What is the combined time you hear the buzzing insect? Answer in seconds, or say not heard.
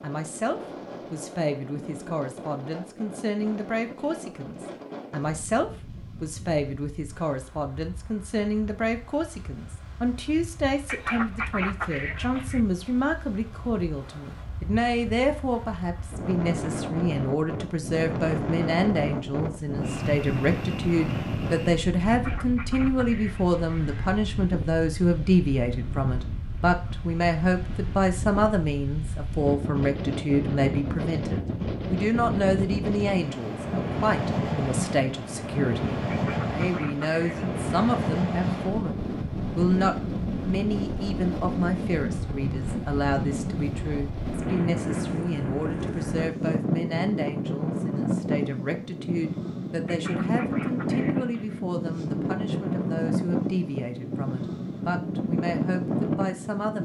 not heard.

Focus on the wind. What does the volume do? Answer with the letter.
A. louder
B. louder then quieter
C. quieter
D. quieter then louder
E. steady
A.